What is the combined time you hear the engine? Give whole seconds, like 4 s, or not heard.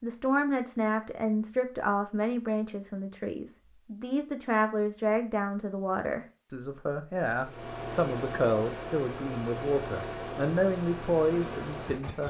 5 s.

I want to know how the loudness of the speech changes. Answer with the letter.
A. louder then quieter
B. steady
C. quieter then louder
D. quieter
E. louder
B.